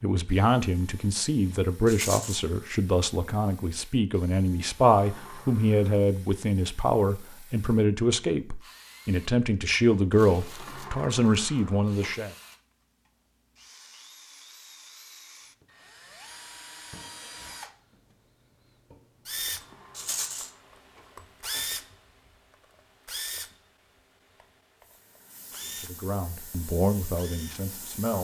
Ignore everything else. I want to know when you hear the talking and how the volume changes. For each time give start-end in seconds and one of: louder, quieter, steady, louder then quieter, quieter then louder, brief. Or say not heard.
0.0-12.3 steady
25.6-28.1 brief.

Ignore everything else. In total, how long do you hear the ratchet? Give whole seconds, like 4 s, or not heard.
not heard.